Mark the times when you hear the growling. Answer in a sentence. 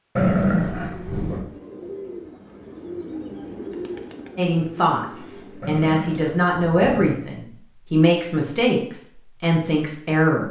The growling can be heard from 0.1 to 1.4 s and from 5.6 to 7.2 s.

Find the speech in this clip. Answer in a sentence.
The speech can be heard from 4.3 to 10.4 s.